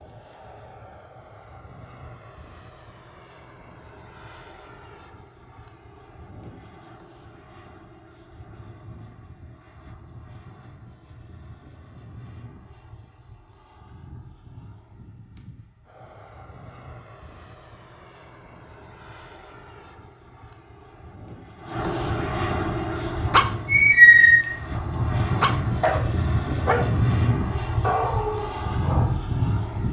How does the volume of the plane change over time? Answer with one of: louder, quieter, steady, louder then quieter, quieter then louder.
louder.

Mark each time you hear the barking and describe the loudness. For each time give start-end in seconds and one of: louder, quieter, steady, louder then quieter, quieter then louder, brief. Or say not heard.
22.9-29.1 quieter.